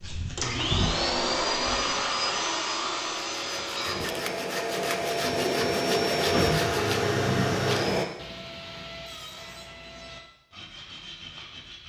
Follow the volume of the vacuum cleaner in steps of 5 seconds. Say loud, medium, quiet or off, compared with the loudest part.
loud, loud, off.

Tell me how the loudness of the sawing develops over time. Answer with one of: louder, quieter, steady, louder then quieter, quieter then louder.
quieter.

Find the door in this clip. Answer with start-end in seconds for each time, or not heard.
5.0-6.6.